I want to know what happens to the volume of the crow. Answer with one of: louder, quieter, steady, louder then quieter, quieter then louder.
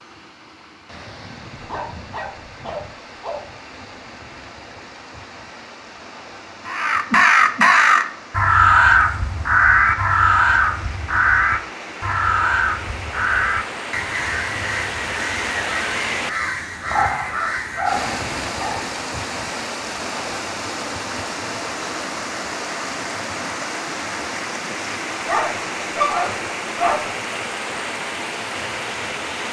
quieter.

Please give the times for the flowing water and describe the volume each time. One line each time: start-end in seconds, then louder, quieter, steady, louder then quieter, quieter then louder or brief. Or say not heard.
0.0-29.4 louder.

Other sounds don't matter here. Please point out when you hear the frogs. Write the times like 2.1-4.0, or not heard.
not heard.